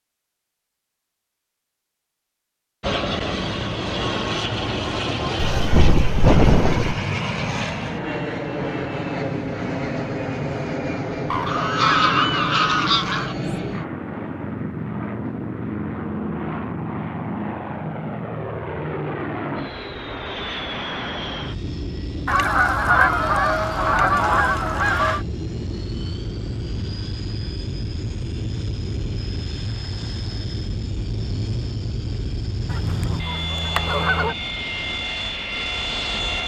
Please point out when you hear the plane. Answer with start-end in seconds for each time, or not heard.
2.8-36.4.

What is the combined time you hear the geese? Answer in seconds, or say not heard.
8 s.